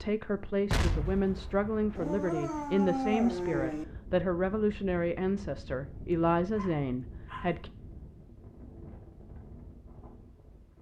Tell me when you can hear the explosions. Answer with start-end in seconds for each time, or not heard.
0.7-2.0.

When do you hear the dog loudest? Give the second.
3 s.